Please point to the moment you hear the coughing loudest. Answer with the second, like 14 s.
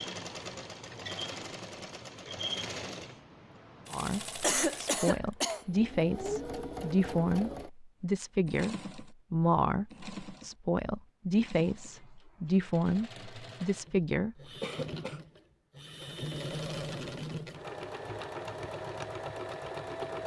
5 s.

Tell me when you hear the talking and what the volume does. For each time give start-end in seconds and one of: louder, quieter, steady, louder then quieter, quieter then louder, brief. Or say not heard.
3.9-14.3 steady.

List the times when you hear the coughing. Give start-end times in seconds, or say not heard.
4.4-5.7, 14.6-15.2.